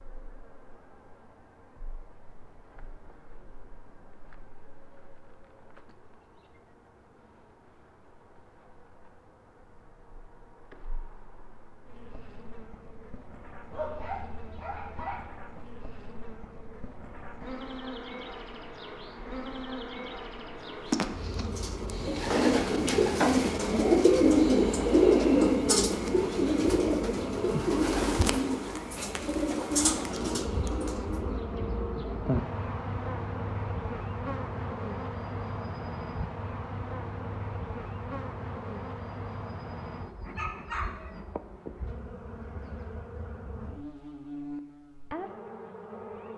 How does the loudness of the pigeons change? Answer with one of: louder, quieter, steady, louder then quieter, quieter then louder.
louder then quieter.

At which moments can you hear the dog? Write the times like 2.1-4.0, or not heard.
13.7-15.3, 40.4-41.2.